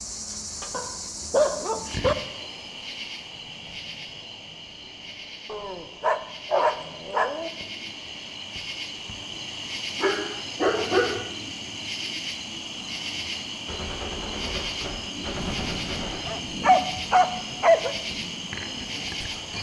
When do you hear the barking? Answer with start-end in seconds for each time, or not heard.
0.7-2.1, 5.5-7.5, 10.0-11.3, 15.3-17.9.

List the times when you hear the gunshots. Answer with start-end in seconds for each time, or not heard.
13.7-16.3.